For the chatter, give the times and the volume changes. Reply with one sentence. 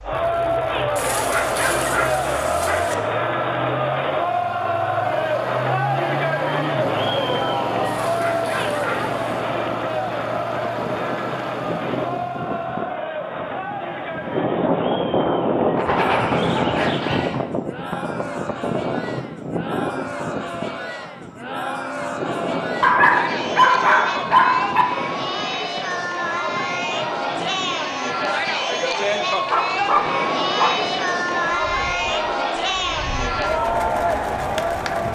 You can hear the chatter from 0.0 to 35.1 s, getting quieter then louder.